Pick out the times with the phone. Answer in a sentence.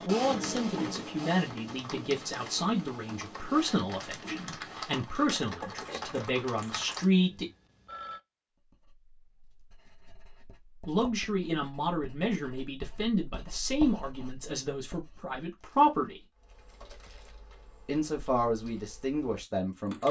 You can hear the phone from 7.2 to 8.2 s.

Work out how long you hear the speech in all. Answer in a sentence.
The speech can be heard for 15 seconds in total.